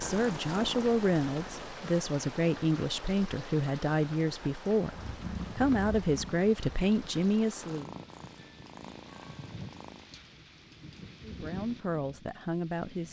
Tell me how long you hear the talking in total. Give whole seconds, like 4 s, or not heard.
10 s.